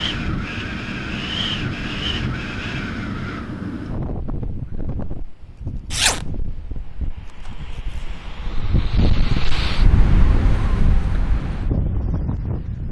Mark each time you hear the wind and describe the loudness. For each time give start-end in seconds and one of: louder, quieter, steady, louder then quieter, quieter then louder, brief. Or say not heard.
0.0-12.8 quieter then louder.